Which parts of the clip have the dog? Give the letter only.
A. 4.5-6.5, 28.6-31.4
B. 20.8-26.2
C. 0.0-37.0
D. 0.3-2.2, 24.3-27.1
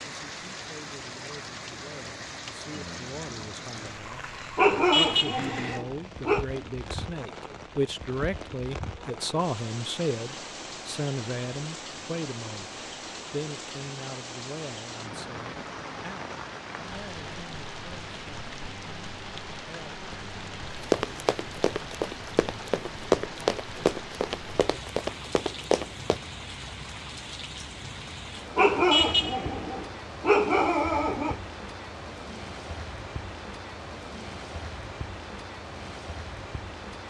A.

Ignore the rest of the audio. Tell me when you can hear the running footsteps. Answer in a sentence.
The running footsteps can be heard from 20.8 to 26.2 s.